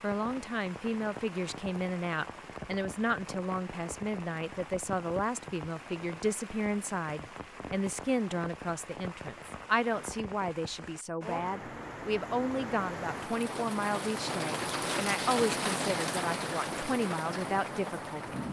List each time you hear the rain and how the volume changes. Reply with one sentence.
The rain can be heard from 0.0 to 18.4 s, getting louder.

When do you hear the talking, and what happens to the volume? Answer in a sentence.
The talking can be heard from 0.0 to 18.4 s, at a steady volume.